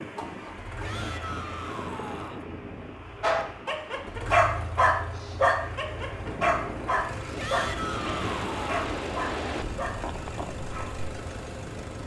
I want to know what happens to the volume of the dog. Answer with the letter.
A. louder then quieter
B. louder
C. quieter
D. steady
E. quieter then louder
C.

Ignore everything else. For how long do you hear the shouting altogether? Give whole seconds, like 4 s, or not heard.
3 s.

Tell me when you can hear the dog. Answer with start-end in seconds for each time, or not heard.
3.2-11.1.